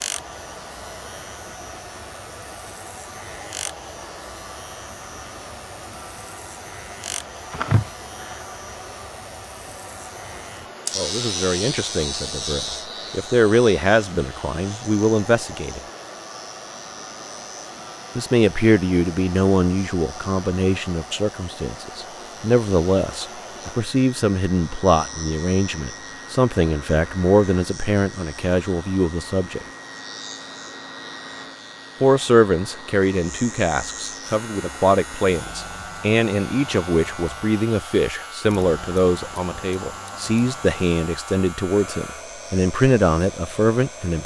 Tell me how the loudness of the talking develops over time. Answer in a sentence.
The loudness of the talking stays about the same.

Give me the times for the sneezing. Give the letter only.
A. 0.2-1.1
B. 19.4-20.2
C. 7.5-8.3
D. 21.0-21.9
C.